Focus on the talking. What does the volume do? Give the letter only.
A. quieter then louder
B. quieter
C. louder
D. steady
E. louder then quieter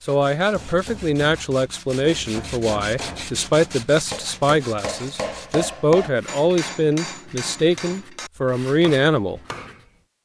D.